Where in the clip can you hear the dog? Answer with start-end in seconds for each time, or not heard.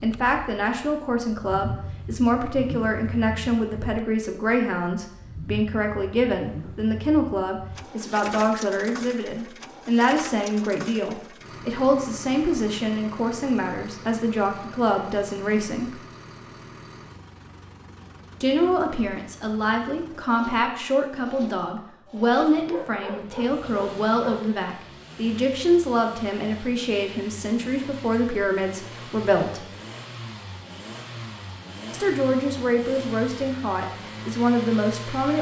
22.6-24.5.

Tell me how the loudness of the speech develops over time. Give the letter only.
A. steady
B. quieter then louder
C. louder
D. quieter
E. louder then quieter
A.